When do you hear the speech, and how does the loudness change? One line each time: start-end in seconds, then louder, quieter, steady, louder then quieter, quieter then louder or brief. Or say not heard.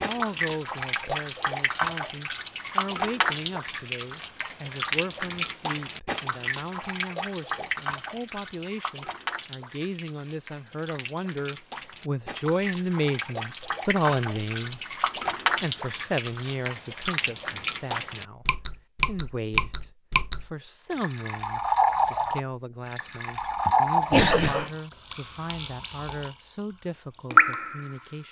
0.0-14.8 louder
15.6-28.2 steady.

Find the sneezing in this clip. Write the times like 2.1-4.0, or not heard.
23.6-24.7.